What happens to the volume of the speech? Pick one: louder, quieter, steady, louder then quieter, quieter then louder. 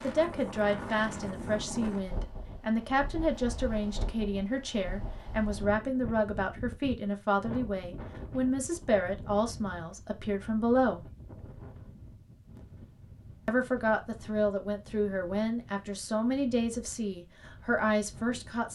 steady.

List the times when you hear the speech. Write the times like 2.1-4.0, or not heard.
0.0-11.1, 13.4-18.7.